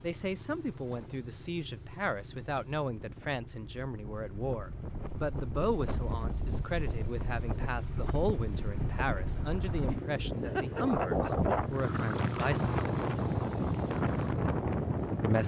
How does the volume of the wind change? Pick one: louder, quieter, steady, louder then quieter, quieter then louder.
louder.